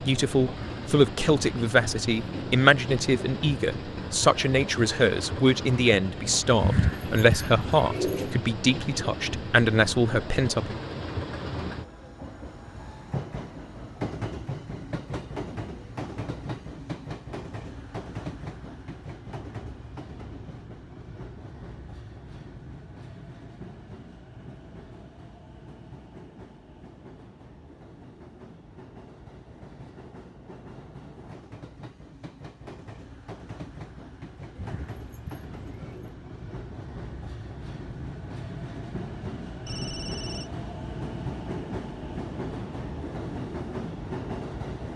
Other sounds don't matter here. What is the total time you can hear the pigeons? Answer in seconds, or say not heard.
3 s.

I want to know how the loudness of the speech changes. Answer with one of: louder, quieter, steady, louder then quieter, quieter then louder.
steady.